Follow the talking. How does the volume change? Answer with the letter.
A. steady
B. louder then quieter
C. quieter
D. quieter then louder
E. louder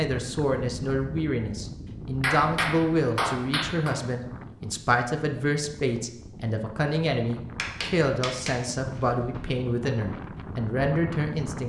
A.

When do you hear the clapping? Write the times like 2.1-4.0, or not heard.
2.2-4.0, 7.5-9.6.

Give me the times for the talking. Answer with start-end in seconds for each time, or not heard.
0.0-11.6.